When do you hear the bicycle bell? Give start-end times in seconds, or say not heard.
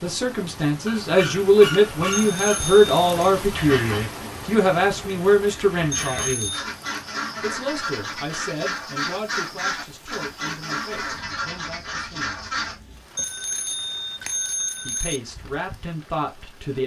2.1-3.1, 5.9-6.7, 13.2-15.2.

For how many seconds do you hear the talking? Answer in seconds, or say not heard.
14 s.